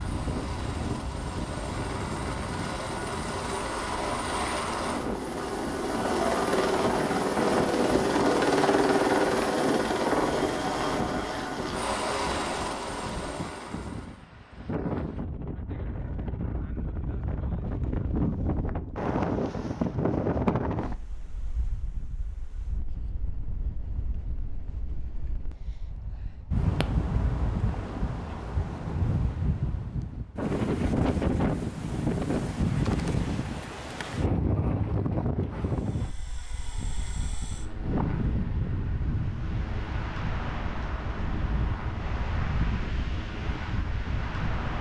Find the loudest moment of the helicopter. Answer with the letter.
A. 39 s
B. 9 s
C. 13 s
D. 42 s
B.